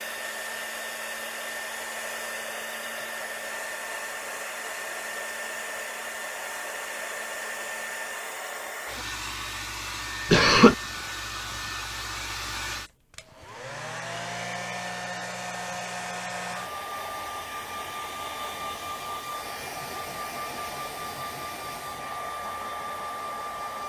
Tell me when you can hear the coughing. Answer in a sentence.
The coughing can be heard from 10.3 to 10.8 s.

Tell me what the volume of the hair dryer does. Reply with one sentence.
The volume of the hair dryer stays about the same.